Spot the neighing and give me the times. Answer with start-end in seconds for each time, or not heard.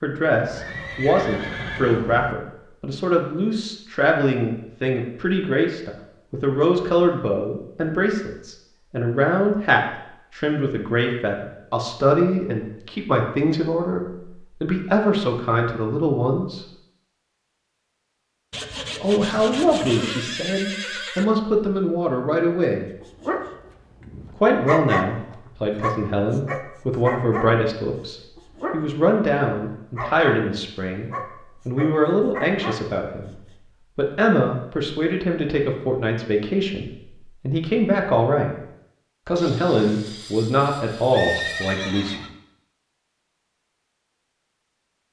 0.3-2.4, 19.7-21.2, 41.1-42.3.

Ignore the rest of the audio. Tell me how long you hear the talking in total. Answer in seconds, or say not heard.
38 s.